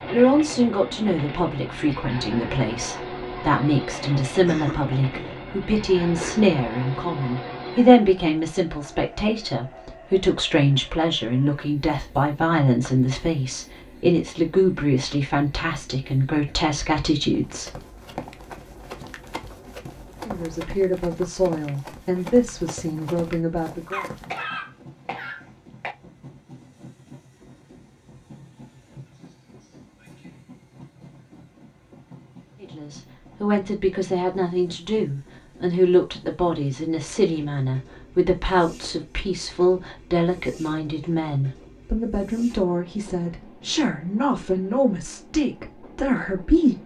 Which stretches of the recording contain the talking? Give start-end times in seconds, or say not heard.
0.1-17.8, 20.2-24.1, 32.6-46.8.